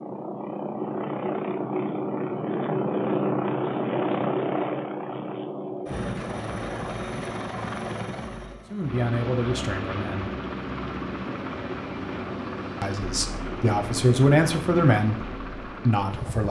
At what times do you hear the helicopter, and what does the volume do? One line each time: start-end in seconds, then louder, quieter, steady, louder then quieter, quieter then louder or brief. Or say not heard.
0.0-16.4 quieter.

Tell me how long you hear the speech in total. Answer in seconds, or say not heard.
5 s.